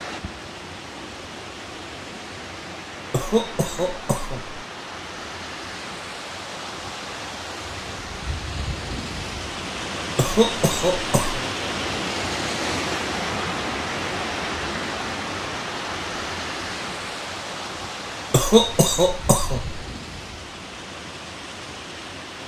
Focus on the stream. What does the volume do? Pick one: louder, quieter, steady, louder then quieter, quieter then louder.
louder then quieter.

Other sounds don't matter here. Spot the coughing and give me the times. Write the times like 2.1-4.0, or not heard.
3.1-4.6, 10.2-11.4, 18.3-19.8.